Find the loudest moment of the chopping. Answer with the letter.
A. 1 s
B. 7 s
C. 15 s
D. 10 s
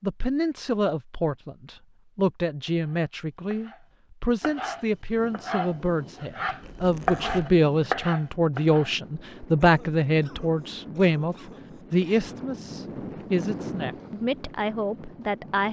B.